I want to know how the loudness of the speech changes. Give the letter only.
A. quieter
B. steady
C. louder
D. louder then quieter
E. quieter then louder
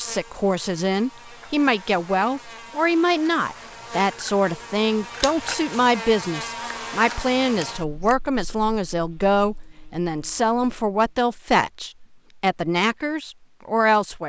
B.